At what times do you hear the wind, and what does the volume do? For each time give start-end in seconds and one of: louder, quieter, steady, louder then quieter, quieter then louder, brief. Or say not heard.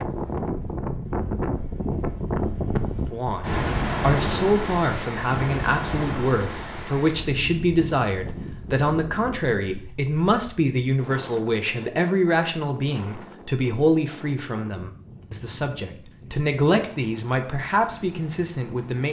0.0-19.0 quieter.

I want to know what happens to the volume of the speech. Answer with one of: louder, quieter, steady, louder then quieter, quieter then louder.
steady.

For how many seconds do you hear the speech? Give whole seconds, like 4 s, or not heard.
16 s.